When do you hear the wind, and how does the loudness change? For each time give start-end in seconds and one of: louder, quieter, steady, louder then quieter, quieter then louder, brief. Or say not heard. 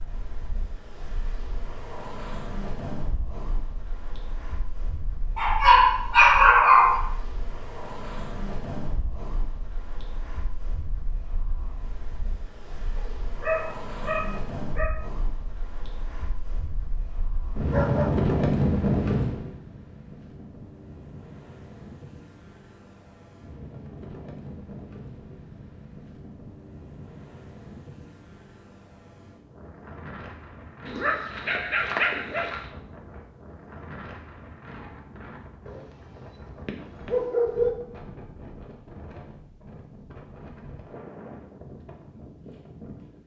0.0-43.2 louder then quieter.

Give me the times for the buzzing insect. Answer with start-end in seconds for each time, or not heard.
not heard.